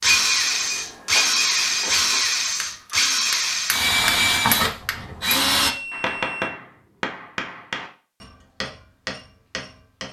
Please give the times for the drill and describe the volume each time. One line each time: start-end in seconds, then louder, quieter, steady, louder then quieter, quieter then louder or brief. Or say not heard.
0.0-5.8 steady.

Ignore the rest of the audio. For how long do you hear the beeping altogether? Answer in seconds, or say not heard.
3 s.